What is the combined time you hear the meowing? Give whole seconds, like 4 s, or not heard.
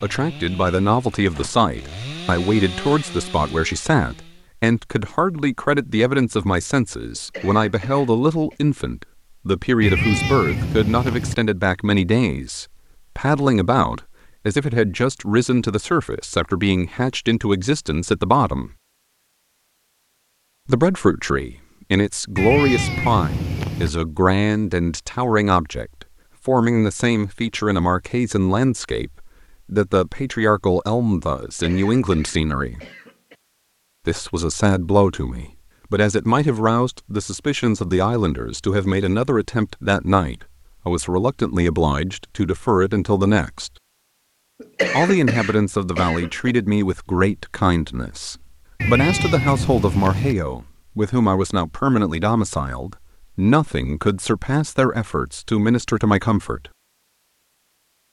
5 s.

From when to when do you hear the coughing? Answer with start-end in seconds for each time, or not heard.
7.2-8.6, 31.4-33.4, 44.6-46.5.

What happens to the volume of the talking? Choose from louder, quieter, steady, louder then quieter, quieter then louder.
steady.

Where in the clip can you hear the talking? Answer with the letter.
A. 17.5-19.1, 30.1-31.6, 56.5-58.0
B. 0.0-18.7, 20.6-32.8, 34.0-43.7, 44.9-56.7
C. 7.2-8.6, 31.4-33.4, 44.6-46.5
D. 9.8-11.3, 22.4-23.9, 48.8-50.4
B.